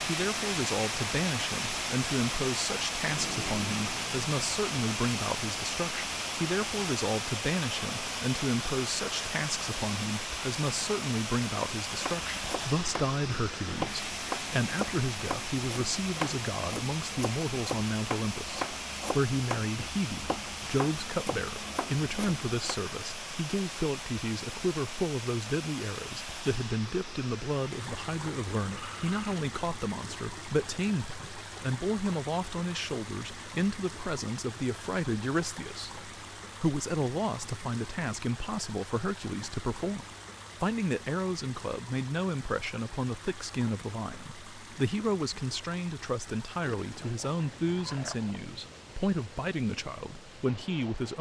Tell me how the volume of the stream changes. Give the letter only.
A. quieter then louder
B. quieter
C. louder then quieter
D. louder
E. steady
B.